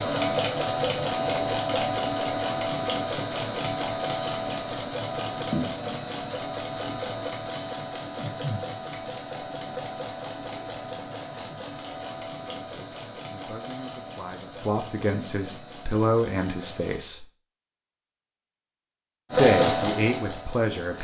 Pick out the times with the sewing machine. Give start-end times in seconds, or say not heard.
0.0-17.1, 19.3-20.9.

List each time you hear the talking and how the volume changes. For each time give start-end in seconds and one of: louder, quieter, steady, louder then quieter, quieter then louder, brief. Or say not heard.
12.4-17.2 louder
19.4-20.9 brief.